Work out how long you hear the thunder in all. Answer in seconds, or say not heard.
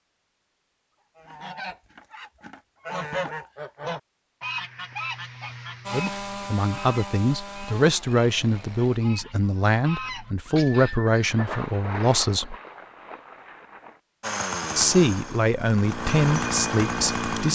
3 s.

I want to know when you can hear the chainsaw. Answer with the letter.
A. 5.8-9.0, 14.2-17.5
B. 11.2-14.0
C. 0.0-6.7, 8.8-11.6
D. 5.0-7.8
A.